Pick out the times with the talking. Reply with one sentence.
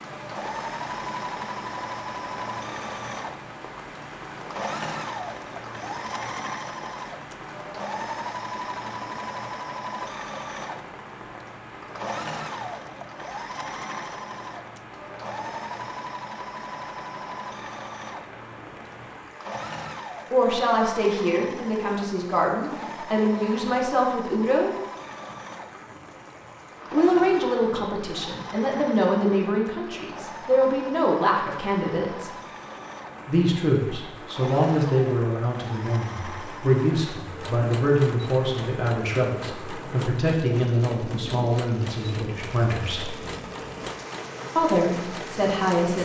The talking can be heard from 20.3 to 24.8 s, from 26.9 to 32.3 s, from 33.2 to 43.1 s and from 44.5 to 46.0 s.